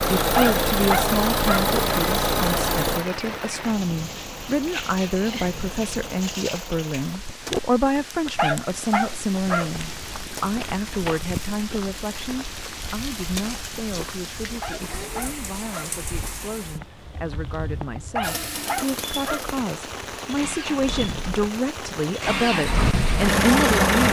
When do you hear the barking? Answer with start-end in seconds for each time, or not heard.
0.3-1.7, 8.3-9.7, 14.6-15.9, 18.1-19.4.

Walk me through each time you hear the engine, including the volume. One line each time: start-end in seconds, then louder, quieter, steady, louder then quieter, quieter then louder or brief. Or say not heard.
0.0-7.2 quieter
18.2-24.0 louder.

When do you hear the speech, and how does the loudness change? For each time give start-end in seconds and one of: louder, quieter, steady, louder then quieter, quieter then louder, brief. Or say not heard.
0.0-24.0 quieter then louder.